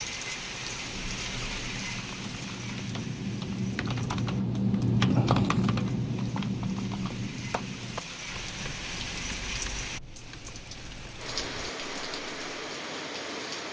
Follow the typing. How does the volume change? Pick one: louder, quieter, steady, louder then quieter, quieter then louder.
louder then quieter.